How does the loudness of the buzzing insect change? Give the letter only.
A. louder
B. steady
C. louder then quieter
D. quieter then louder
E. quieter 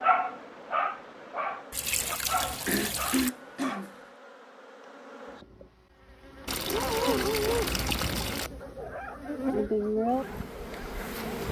A.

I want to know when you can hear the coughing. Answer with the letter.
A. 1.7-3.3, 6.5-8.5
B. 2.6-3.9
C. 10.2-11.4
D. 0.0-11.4
B.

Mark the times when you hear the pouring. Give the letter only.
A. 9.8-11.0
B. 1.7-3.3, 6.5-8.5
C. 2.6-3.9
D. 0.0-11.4
B.